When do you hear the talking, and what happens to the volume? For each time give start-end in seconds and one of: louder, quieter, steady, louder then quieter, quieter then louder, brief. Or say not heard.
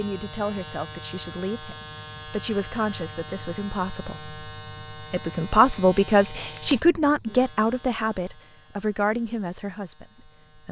0.0-10.6 louder then quieter.